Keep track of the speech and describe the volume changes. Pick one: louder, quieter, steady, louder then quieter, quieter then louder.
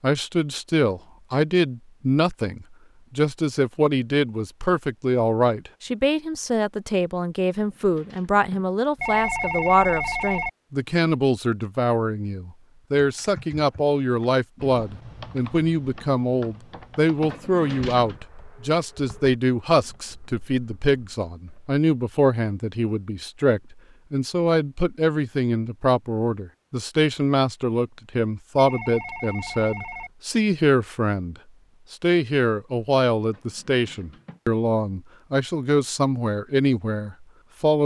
steady.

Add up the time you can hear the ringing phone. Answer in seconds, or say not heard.
3 s.